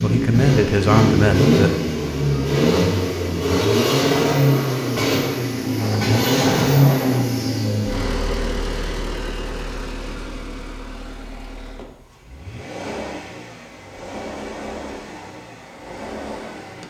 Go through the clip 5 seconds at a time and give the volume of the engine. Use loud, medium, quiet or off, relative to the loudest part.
loud, loud, quiet, quiet.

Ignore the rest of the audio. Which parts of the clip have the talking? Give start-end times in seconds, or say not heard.
0.0-1.7.